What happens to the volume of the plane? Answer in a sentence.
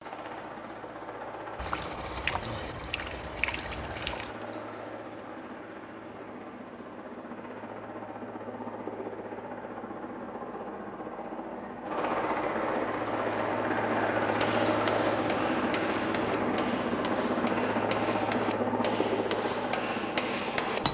The volume of the plane goes up.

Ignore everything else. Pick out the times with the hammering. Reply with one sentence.
You can hear the hammering from 14.3 to 20.8 s.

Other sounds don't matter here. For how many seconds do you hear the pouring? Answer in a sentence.
The pouring can be heard for 3 seconds in total.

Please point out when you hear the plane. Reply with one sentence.
The plane can be heard from 0.0 to 20.8 s.